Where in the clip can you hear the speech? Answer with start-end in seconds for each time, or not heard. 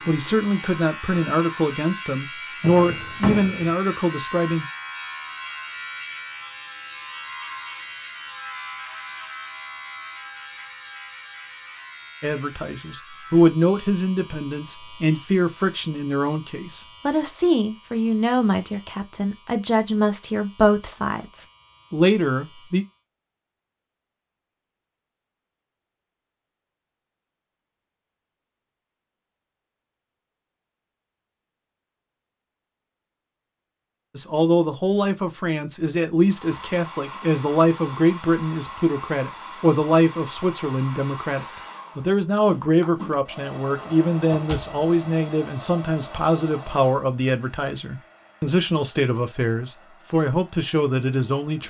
0.1-4.7, 12.2-22.9, 34.1-51.6.